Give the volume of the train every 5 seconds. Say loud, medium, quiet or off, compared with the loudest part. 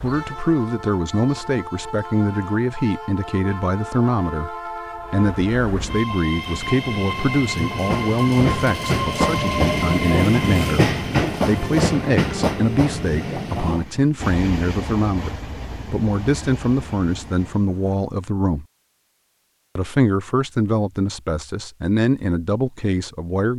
medium, loud, loud, quiet, off.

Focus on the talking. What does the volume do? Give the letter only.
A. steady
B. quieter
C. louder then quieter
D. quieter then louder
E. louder
A.